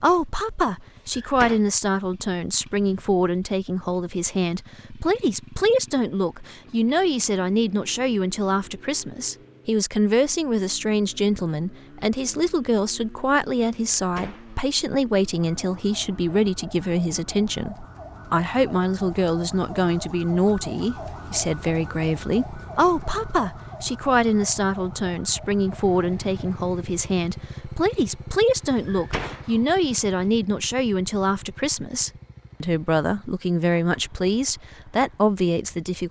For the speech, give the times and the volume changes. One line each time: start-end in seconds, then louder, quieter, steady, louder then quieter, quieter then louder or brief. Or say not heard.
0.0-36.0 steady.